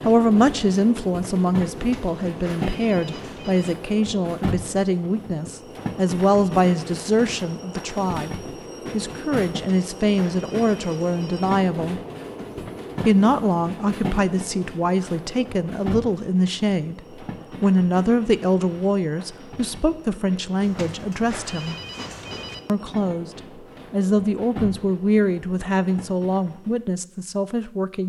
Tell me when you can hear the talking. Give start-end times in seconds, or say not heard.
0.1-12.0, 13.1-21.8, 22.6-28.0.